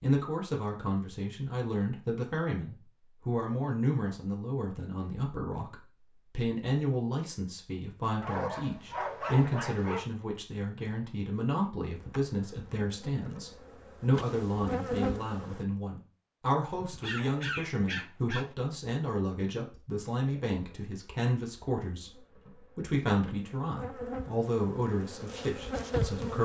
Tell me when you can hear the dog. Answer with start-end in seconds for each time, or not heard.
8.2-10.1, 16.7-18.6.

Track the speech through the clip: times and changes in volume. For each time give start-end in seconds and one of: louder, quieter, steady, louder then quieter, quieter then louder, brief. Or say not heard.
0.0-26.4 steady.